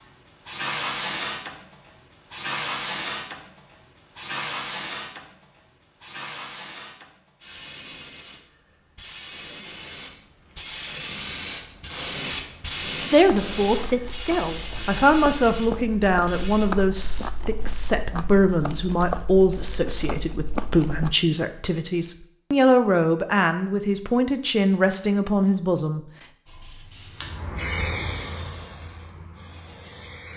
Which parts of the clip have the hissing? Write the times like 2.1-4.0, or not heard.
0.5-16.7, 26.4-30.3.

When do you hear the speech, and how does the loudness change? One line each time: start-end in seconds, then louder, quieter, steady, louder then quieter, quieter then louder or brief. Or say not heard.
13.1-26.0 steady.